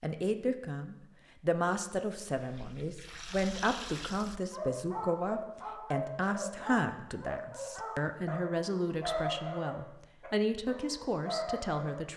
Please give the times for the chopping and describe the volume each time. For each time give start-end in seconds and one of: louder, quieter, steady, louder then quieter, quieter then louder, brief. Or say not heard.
not heard.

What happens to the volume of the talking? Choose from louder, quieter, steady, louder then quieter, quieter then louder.
steady.